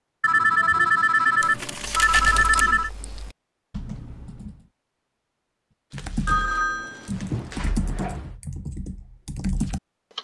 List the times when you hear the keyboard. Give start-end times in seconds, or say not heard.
1.9-4.7, 5.9-10.2.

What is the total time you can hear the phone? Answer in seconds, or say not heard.
5 s.